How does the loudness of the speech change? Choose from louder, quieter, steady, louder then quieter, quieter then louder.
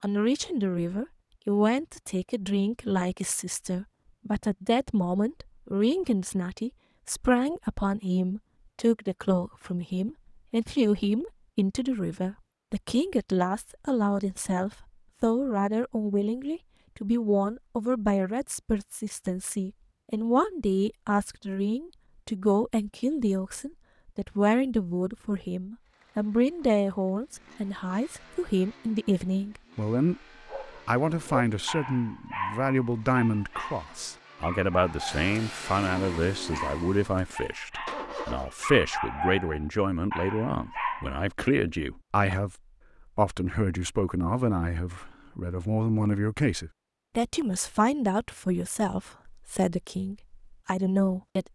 steady.